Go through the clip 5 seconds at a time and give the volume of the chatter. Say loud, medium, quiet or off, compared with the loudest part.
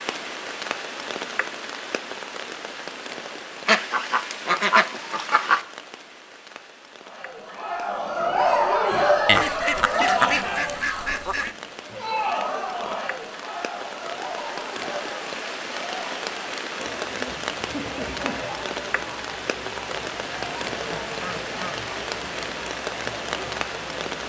off, loud, medium, quiet, quiet.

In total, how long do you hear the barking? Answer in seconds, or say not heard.
2 s.